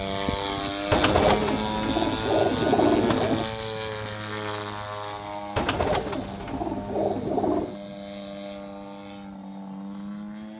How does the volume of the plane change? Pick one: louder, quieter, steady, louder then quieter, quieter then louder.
quieter.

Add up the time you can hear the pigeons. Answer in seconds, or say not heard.
5 s.